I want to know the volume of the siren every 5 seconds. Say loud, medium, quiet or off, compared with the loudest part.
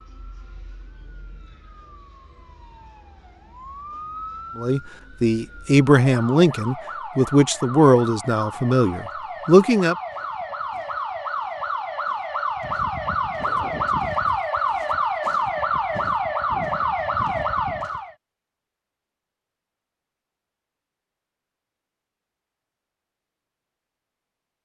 quiet, medium, loud, loud, off.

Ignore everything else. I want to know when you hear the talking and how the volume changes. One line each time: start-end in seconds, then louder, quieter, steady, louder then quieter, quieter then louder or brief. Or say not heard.
4.5-9.9 steady.